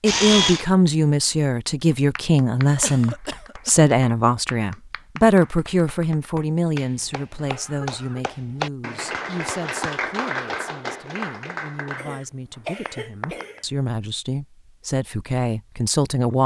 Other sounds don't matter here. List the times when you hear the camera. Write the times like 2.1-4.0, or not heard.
0.1-0.7.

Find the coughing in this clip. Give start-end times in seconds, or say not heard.
2.8-3.9, 7.3-8.2, 11.9-13.7.